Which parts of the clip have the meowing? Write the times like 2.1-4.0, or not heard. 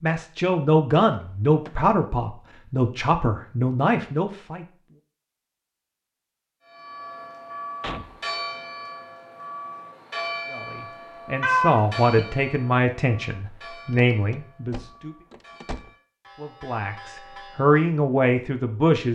11.4-12.2.